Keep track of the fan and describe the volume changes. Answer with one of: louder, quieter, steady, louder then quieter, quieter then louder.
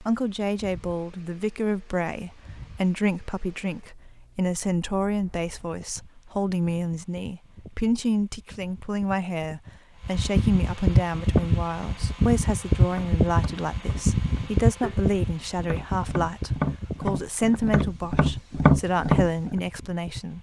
louder then quieter.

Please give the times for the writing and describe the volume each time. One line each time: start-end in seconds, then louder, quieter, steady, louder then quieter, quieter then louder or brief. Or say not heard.
not heard.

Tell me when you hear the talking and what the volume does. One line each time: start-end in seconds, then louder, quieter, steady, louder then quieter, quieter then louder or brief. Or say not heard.
0.0-20.3 steady.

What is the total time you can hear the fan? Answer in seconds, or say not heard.
20 s.